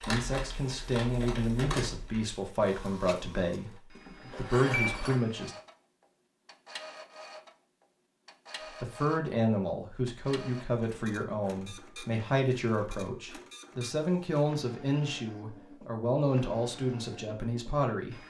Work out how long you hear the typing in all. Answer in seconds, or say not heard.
2 s.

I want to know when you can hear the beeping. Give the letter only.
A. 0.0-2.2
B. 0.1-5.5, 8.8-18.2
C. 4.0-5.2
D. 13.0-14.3
C.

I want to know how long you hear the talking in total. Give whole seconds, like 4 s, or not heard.
15 s.